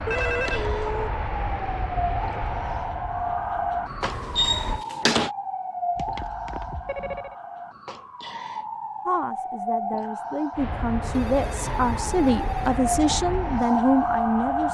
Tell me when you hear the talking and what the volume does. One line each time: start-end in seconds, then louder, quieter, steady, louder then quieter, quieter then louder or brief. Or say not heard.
9.1-14.6 louder.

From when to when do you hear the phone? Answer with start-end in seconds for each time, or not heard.
0.1-1.1, 6.0-7.3, 11.1-12.8.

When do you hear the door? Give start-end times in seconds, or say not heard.
4.0-5.3.